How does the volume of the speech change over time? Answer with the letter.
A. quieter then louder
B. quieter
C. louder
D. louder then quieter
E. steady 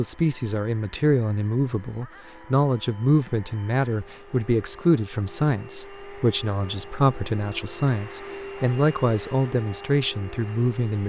E.